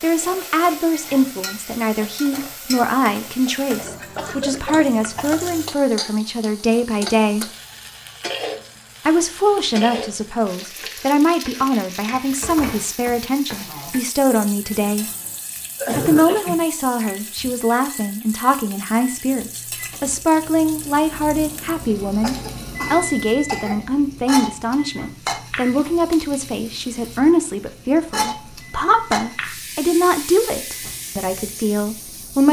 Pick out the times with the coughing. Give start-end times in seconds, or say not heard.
4.0-5.3, 15.5-17.5, 22.2-24.0.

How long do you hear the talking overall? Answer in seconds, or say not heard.
30 s.